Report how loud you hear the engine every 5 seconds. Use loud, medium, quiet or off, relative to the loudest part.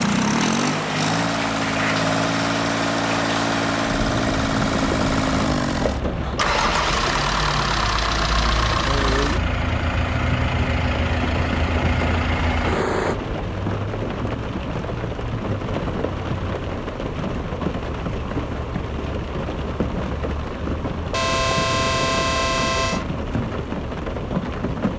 loud, loud, loud, off, off.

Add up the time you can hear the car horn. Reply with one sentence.
The car horn can be heard for 2 seconds in total.